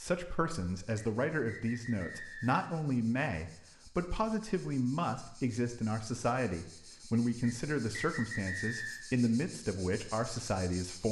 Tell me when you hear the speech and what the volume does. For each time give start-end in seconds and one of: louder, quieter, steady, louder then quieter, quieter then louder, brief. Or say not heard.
0.0-11.0 steady.